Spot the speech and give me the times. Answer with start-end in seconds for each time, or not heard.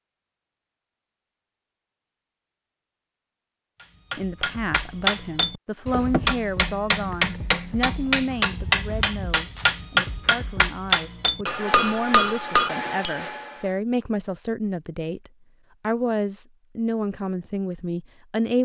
4.2-18.6.